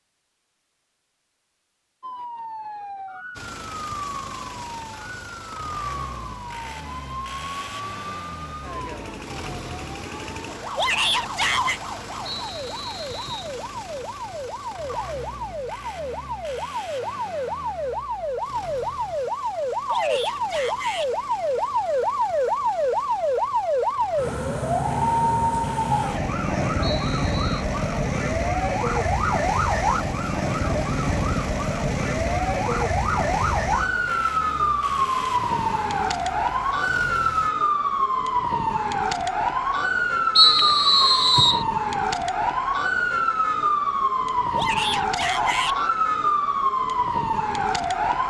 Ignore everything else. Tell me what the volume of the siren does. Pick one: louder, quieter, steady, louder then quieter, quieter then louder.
louder.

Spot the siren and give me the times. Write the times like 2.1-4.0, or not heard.
2.0-48.2.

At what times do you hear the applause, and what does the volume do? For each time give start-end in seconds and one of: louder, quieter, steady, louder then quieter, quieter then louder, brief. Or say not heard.
not heard.